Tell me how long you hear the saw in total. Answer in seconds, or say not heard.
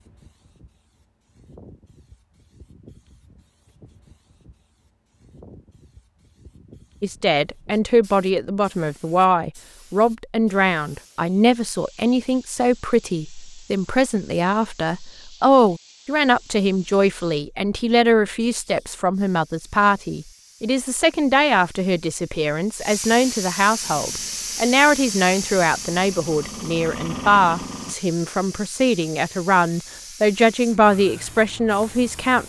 not heard.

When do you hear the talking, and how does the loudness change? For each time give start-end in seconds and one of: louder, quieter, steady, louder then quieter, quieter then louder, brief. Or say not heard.
7.0-32.4 steady.